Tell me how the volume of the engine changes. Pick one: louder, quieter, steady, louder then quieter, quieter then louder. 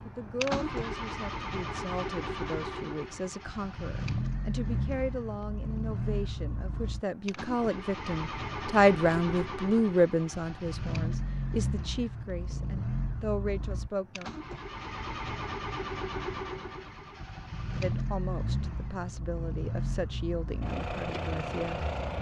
steady.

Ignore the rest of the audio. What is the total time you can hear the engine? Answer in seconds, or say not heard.
22 s.